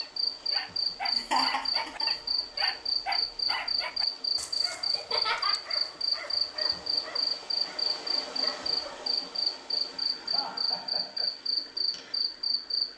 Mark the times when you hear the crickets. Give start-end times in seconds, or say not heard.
0.0-12.9.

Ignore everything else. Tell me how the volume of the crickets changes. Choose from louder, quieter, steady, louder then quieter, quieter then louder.
steady.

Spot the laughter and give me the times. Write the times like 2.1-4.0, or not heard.
1.1-2.0, 5.0-5.5, 10.3-11.3.